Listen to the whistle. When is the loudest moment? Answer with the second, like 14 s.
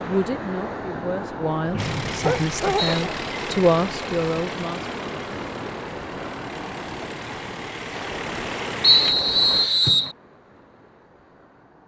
9 s.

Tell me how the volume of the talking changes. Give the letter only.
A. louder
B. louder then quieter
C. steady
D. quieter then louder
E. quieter
A.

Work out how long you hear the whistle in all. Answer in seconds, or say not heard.
3 s.